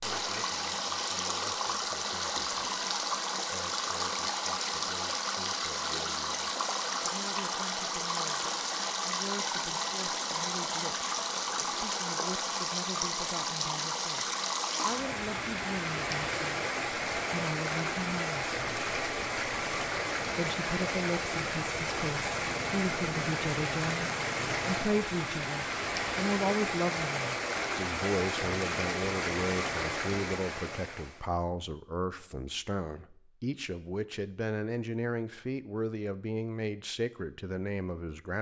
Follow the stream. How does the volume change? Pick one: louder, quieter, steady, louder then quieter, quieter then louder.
steady.